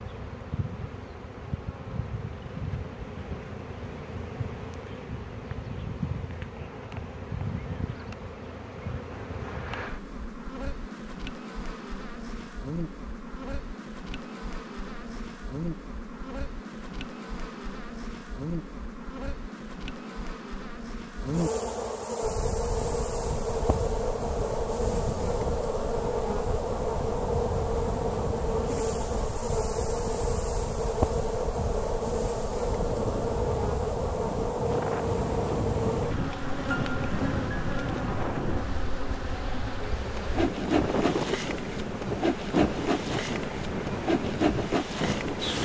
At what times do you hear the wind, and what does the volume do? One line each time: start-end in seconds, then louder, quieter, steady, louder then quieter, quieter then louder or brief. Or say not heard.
22.2-45.6 louder.